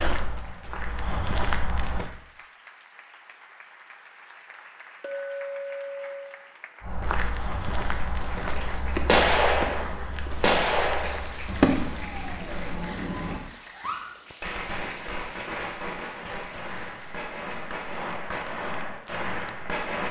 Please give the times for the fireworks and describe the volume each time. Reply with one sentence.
The fireworks can be heard from 8.6 to 20.0 s, getting quieter.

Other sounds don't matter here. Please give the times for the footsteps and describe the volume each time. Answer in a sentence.
You can hear the footsteps briefly from 0.0 to 2.1 s; and from 6.8 to 12.8 s, getting quieter.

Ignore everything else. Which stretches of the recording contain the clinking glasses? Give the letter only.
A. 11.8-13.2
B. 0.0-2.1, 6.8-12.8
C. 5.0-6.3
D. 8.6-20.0
C.